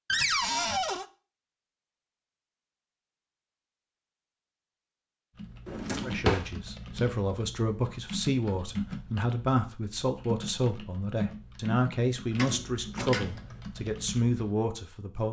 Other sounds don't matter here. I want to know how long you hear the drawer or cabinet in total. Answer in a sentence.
You can hear the drawer or cabinet for 3 seconds altogether.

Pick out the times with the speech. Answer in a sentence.
The speech can be heard from 6.0 to 15.2 s.